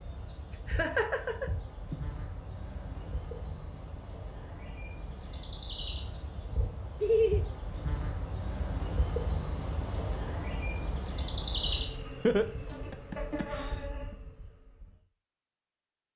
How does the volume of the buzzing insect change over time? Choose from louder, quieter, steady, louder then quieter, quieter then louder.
louder then quieter.